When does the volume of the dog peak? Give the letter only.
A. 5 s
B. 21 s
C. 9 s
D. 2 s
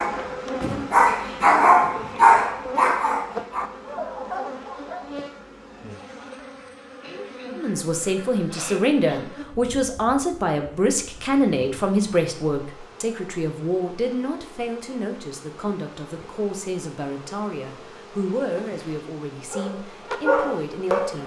D.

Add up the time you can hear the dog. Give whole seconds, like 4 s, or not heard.
7 s.